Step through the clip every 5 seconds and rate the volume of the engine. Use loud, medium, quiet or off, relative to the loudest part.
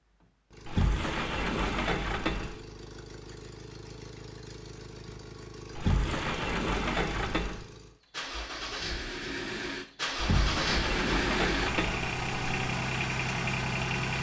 quiet, medium, loud.